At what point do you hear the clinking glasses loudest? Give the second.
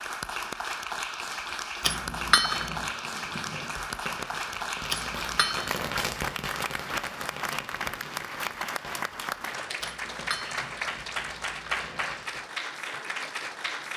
2 s.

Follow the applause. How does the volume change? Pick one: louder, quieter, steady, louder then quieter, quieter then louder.
steady.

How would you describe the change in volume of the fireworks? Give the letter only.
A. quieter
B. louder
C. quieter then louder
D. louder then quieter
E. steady
D.